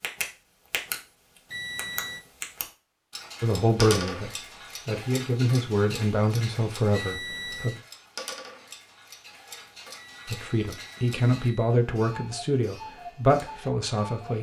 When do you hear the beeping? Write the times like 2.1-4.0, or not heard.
1.5-2.2, 6.9-7.8, 9.9-11.8.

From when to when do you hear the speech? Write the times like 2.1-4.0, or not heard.
3.4-7.8, 10.2-14.3.